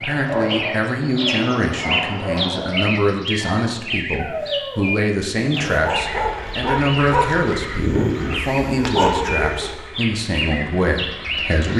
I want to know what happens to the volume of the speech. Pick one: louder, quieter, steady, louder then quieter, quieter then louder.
steady.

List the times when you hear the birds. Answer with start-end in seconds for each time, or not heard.
0.0-11.7.